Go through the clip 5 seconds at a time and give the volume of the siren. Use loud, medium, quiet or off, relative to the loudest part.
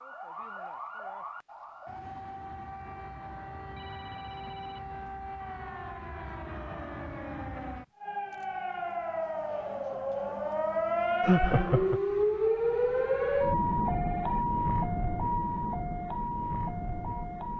quiet, medium, loud, medium.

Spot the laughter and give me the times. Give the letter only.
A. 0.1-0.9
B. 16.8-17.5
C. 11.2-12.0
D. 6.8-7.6
C.